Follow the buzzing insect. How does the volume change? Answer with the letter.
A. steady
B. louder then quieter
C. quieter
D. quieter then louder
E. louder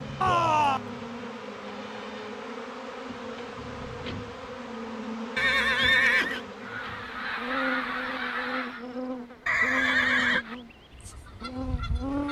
A.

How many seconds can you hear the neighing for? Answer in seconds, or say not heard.
3 s.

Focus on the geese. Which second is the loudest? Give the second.
8 s.